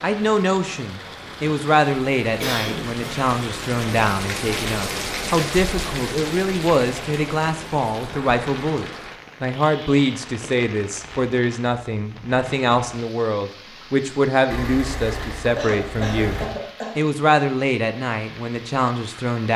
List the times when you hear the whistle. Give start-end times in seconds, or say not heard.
not heard.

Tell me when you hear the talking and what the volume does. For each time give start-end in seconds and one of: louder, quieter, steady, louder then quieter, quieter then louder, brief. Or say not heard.
0.0-19.5 steady.